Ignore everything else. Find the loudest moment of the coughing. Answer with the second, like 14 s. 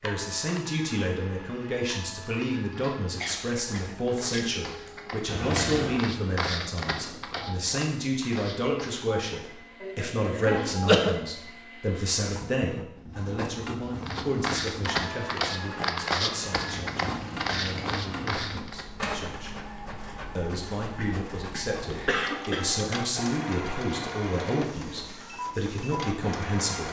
11 s.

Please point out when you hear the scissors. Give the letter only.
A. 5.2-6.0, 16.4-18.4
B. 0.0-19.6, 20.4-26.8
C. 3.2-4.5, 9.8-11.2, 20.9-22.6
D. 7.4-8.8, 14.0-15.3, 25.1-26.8
A.